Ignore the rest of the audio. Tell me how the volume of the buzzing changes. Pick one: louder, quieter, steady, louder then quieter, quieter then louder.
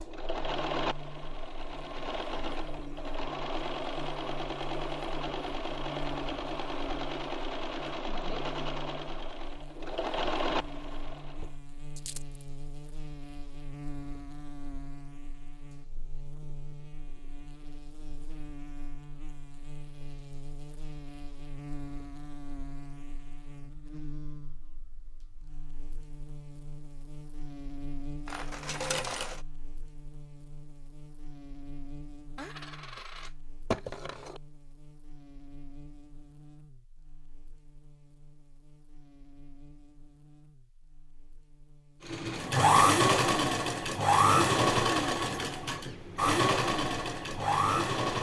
quieter.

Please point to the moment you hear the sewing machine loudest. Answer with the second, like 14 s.
43 s.